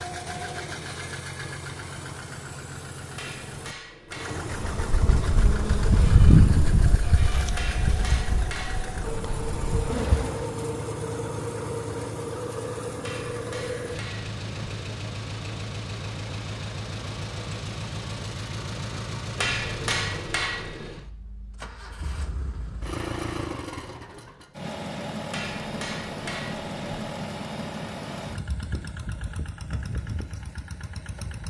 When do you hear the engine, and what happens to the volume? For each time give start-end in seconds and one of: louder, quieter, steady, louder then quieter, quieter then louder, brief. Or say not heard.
0.0-31.4 steady.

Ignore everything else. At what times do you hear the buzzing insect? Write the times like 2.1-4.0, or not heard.
4.7-10.6.